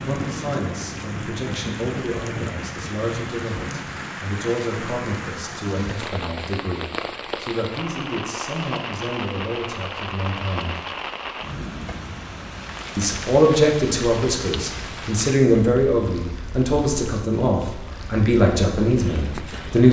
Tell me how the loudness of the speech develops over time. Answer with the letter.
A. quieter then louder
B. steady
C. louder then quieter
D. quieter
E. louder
E.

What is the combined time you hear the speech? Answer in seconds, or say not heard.
18 s.